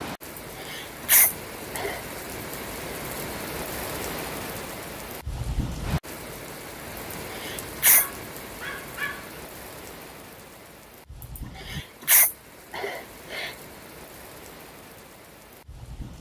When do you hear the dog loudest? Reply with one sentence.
The volume of the dog peaks at 9 seconds.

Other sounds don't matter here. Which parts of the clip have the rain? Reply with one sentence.
You can hear the rain from 0.0 to 16.1 s.